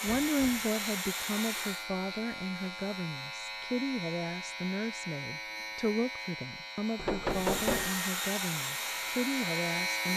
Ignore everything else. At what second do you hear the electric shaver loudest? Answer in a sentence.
The loudest moment of the electric shaver is at 10 seconds.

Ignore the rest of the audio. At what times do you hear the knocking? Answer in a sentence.
The knocking can be heard from 0.1 to 0.7 s and from 7.0 to 8.0 s.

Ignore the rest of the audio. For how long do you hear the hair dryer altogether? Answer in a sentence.
The hair dryer can be heard for 5 seconds in total.